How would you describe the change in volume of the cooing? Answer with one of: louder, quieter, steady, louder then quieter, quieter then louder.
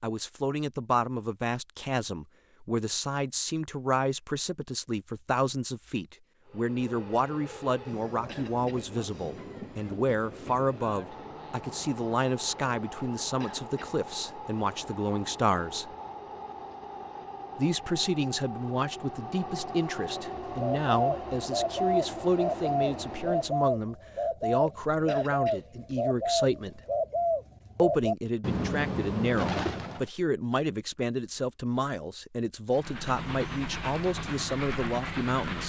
steady.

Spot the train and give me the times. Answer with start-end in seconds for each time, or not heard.
6.5-23.7, 32.7-35.6.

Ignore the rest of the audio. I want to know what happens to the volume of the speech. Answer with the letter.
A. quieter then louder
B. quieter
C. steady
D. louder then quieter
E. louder
C.